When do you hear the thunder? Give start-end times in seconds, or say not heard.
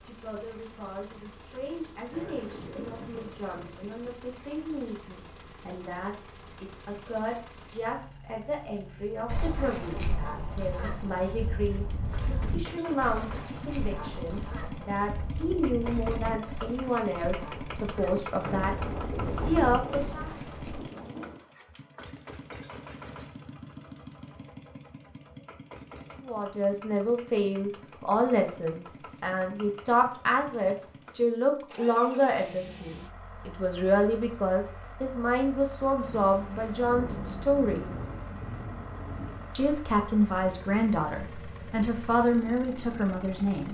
2.1-4.1, 18.4-21.4, 36.0-39.5.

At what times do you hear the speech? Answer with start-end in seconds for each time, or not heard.
0.0-18.8, 19.4-20.3, 26.2-37.9, 39.5-43.7.